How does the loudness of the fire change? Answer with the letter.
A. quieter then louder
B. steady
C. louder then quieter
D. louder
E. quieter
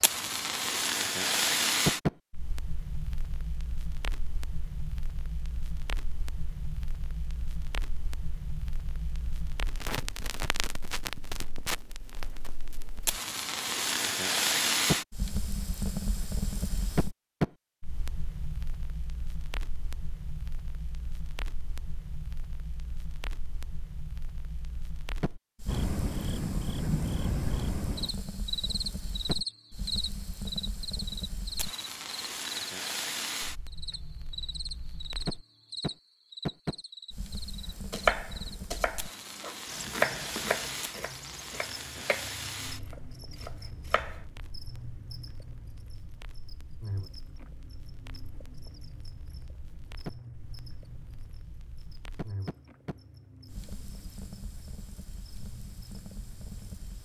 E.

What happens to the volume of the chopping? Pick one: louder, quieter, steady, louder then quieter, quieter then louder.
louder then quieter.